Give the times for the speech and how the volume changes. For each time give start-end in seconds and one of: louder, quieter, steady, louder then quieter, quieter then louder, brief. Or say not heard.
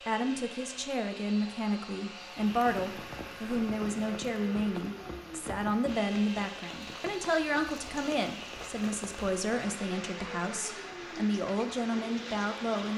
0.1-12.9 steady.